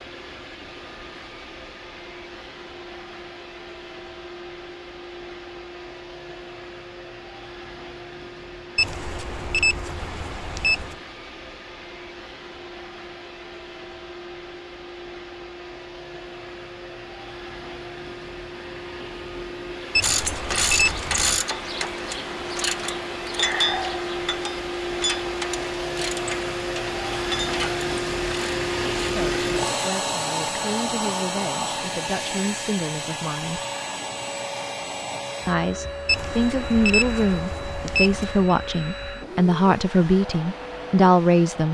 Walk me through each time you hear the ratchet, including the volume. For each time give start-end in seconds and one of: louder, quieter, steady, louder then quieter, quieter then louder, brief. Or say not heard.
20.0-29.9 quieter.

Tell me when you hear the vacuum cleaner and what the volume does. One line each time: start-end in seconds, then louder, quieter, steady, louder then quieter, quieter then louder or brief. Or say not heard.
0.0-41.7 louder then quieter.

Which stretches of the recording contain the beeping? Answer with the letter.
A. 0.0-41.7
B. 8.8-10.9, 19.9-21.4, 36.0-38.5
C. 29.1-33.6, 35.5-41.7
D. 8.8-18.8
B.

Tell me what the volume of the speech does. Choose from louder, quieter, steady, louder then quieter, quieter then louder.
louder.